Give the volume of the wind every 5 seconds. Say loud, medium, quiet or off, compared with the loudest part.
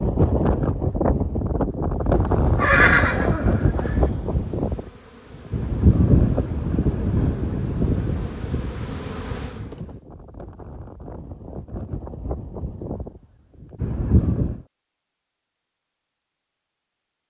loud, loud, medium, off.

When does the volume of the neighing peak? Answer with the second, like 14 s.
3 s.